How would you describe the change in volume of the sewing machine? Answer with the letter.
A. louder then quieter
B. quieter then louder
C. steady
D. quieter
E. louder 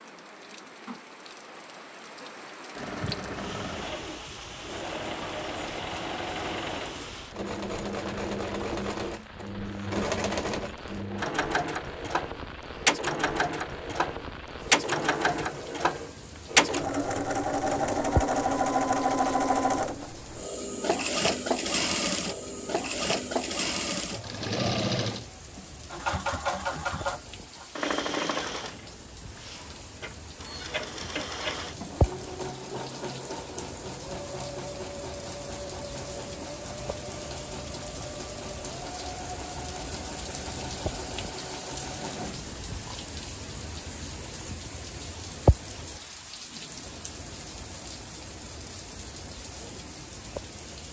A.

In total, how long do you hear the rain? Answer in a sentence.
You can hear the rain for 51 seconds altogether.